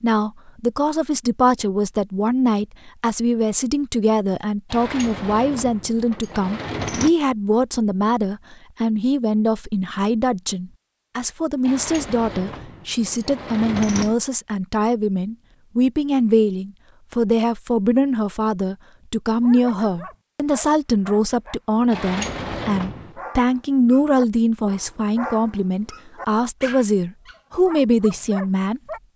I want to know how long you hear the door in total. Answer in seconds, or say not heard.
6 s.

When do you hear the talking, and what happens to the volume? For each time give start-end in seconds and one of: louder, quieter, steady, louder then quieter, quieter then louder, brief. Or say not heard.
0.0-28.8 steady.